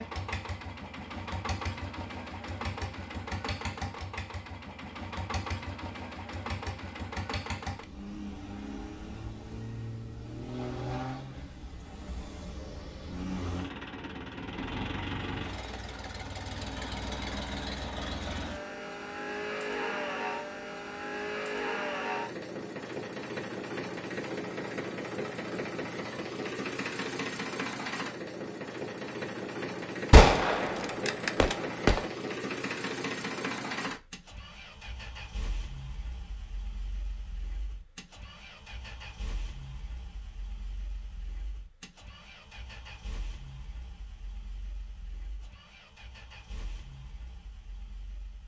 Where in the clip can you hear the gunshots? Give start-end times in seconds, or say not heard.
30.1-32.0.